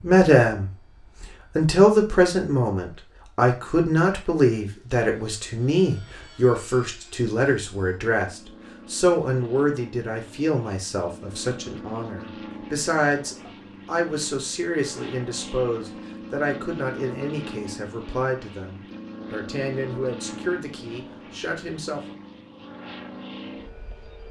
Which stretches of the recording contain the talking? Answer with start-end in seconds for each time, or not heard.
0.0-22.1.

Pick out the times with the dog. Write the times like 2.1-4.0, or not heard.
not heard.